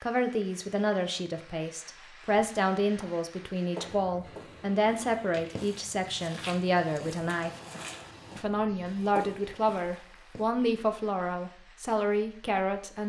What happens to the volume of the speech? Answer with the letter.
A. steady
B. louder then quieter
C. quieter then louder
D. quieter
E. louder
A.